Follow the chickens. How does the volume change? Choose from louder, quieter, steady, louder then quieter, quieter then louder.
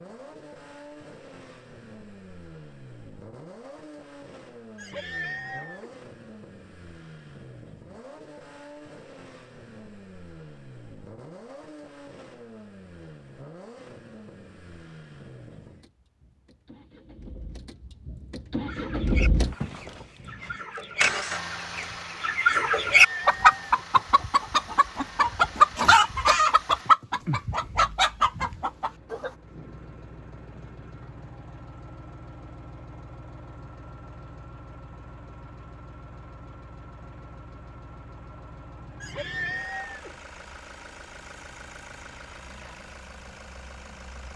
louder then quieter.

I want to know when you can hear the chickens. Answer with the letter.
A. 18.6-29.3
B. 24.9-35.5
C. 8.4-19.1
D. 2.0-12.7
A.